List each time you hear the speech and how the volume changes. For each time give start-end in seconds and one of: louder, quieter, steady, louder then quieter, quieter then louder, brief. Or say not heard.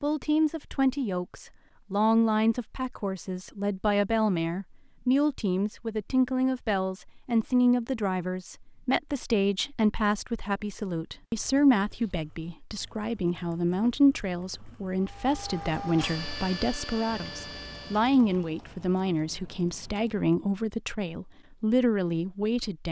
0.0-22.8 steady.